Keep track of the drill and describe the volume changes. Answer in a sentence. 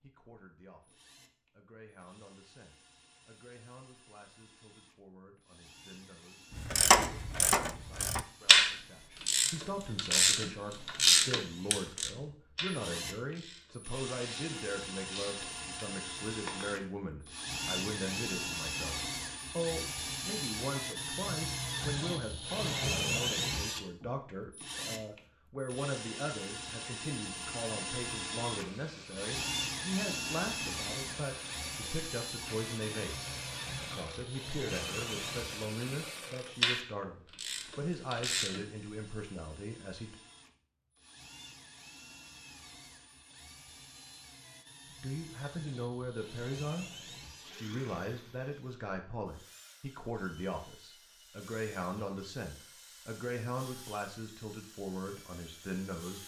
The volume of the drill goes up, then down.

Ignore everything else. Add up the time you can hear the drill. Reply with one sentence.
You can hear the drill for 56 seconds altogether.